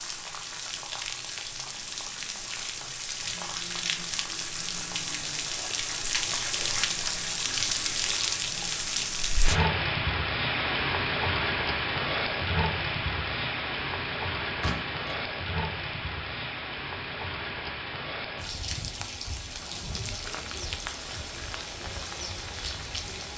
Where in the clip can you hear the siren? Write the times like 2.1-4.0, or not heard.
not heard.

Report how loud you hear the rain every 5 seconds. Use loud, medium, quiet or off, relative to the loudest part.
medium, loud, loud, medium, medium.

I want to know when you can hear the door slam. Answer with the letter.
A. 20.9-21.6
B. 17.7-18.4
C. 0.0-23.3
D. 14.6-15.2
D.